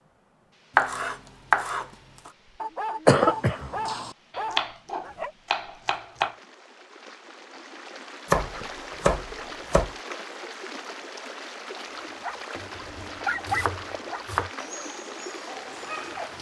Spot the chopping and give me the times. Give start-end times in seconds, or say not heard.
0.8-2.3, 4.3-6.3, 8.2-9.9, 12.6-14.5.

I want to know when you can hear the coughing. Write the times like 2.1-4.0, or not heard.
3.0-4.1.